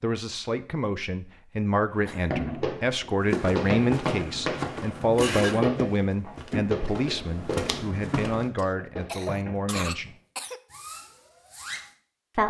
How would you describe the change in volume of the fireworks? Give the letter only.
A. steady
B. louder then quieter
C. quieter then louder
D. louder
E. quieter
E.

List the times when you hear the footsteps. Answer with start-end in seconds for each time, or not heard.
3.2-8.5.